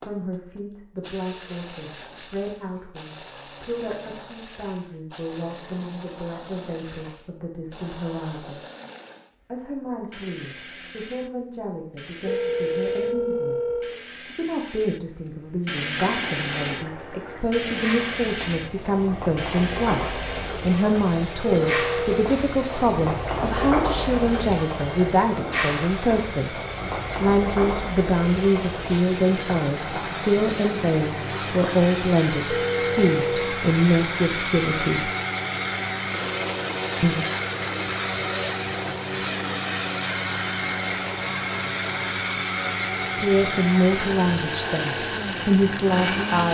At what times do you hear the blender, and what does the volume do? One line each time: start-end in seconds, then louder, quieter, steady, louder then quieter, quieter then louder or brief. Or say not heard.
0.0-46.5 louder.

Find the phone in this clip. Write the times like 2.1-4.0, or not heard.
12.2-14.0, 21.6-22.1, 32.5-33.6.